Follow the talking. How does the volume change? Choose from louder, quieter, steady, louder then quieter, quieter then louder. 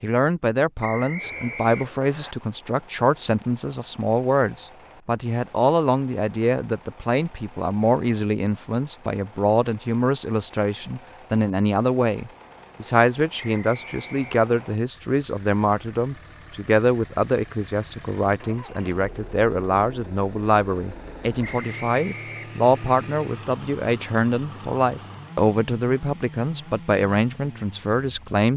steady.